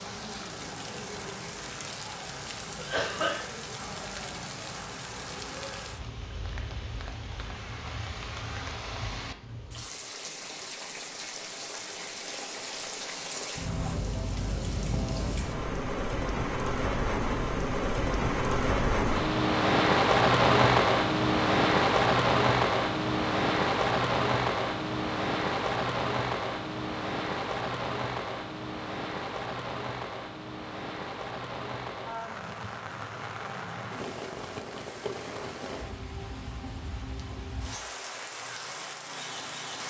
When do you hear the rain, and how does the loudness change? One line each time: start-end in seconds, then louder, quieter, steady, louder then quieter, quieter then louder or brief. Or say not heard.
0.0-39.8 louder then quieter.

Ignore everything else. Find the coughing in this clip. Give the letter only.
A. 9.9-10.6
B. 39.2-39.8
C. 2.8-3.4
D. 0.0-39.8
C.